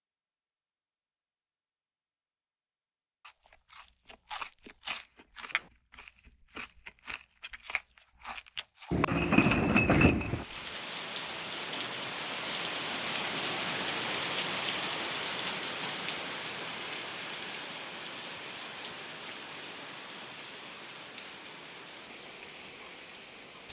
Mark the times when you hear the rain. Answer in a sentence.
You can hear the rain from 10.2 to 23.6 s.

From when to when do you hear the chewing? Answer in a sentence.
You can hear the chewing from 3.2 to 10.8 s.